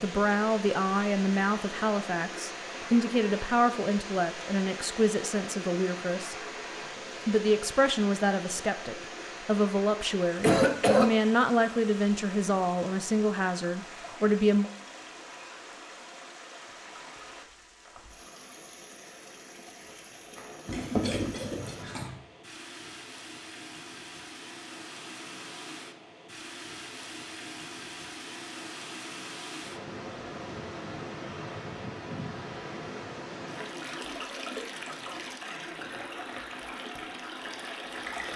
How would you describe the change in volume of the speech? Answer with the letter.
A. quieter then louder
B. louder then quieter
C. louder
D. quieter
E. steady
E.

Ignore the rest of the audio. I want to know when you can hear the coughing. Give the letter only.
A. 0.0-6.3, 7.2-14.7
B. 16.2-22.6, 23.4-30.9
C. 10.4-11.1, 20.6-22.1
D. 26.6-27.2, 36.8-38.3
C.